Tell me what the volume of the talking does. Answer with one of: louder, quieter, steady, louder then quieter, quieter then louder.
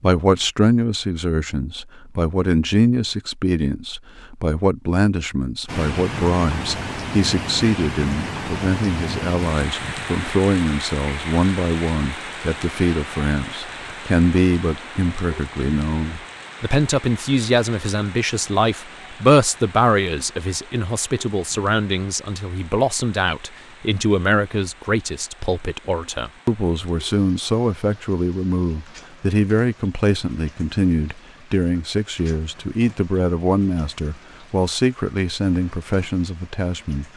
steady.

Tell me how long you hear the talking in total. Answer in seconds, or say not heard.
37 s.